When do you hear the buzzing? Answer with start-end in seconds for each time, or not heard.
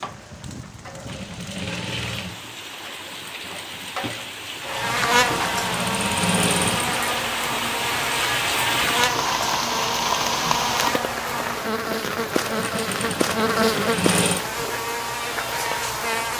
4.7-16.3.